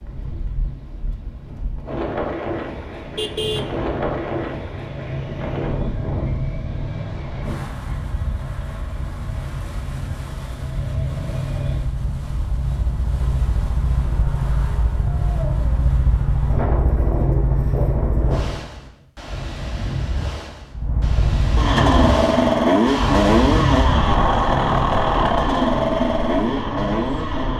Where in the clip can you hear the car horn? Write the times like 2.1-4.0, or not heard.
2.8-3.8.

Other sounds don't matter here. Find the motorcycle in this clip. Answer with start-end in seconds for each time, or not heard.
3.4-18.6, 20.7-27.5.